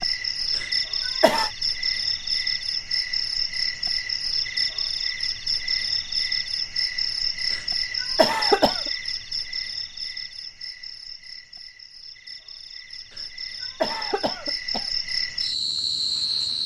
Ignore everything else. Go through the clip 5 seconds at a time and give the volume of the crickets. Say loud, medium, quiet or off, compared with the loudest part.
loud, loud, medium, loud.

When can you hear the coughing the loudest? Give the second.
8 s.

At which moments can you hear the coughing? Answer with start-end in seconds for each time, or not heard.
0.6-1.5, 7.5-8.9, 13.1-14.9.